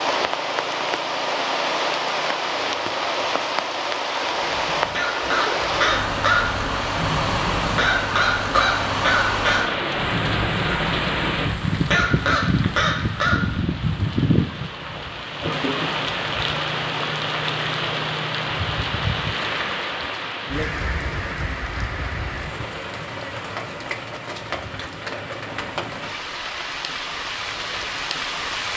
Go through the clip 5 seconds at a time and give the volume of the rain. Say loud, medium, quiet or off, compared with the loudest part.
loud, loud, loud, loud, medium, medium.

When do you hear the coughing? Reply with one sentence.
The coughing can be heard from 15.4 to 16.0 s.